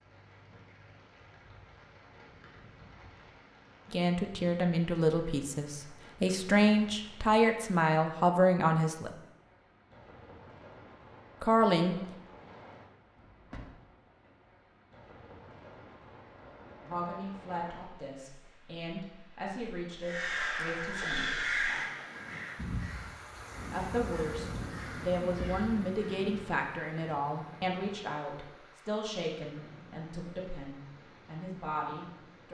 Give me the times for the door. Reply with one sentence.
You can hear the door from 13.2 to 13.8 s.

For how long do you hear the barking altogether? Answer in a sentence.
You can't hear the barking here.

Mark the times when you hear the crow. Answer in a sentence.
You can hear the crow from 20.0 to 25.9 s.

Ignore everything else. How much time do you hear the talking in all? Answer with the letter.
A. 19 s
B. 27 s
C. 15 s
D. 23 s
A.